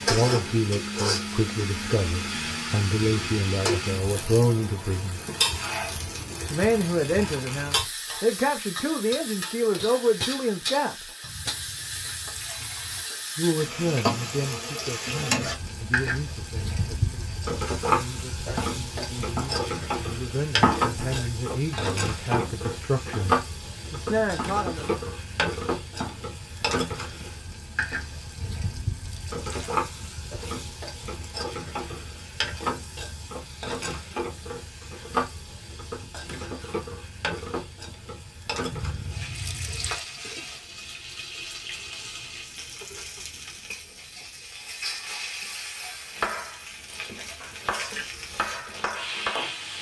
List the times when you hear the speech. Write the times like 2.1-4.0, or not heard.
0.0-5.2, 6.5-11.1, 13.3-24.9.